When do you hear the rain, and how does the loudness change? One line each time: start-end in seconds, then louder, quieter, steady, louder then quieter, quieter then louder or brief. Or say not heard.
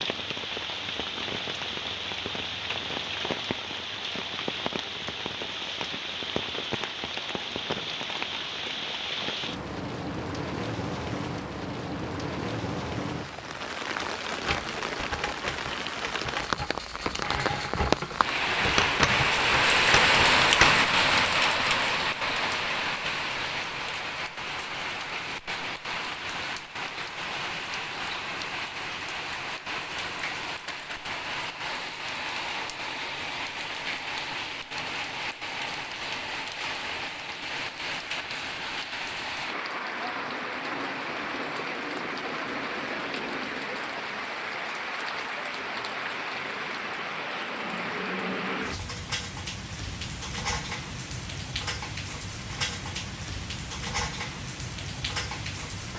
0.0-55.9 louder then quieter.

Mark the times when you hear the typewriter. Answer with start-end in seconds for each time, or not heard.
14.4-20.8.